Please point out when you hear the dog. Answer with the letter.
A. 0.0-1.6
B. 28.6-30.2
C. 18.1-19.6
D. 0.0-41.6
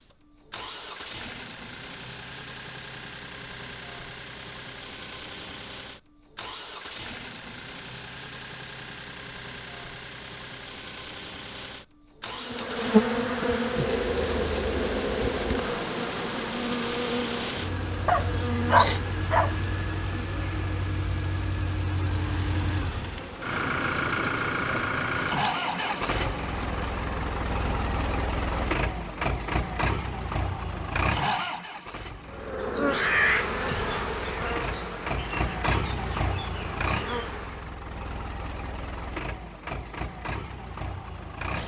C.